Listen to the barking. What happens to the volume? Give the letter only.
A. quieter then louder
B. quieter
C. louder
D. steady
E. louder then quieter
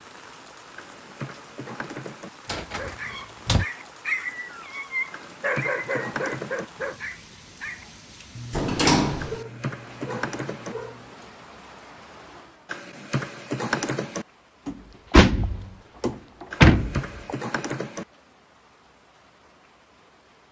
B.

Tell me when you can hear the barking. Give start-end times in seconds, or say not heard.
2.6-11.2.